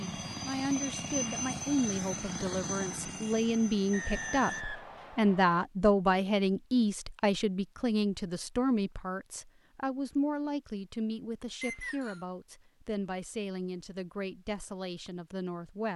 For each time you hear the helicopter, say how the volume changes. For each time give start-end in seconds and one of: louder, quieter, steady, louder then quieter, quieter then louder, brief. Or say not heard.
0.0-4.7 quieter.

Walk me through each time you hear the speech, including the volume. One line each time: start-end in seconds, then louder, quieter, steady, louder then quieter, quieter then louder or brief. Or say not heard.
0.0-15.9 louder then quieter.